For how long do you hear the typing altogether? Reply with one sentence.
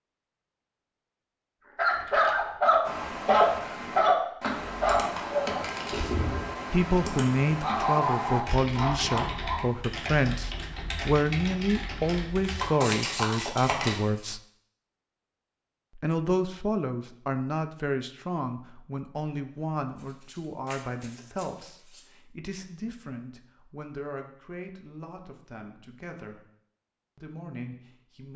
You can hear the typing for 10 seconds altogether.